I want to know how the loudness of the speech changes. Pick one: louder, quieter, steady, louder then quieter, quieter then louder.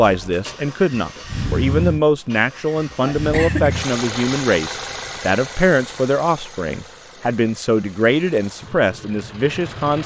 steady.